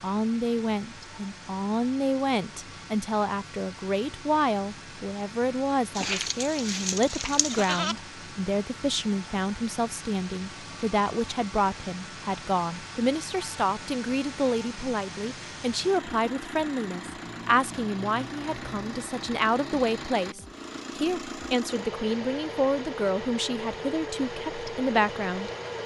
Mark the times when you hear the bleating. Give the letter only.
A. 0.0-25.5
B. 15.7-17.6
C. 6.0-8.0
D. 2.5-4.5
C.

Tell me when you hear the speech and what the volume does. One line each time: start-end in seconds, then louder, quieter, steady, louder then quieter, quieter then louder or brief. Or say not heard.
0.0-25.5 steady.